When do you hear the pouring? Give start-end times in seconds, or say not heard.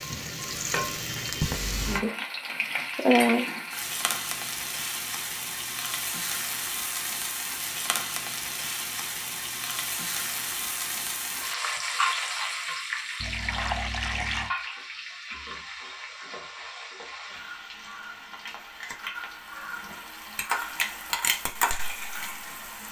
13.2-14.6.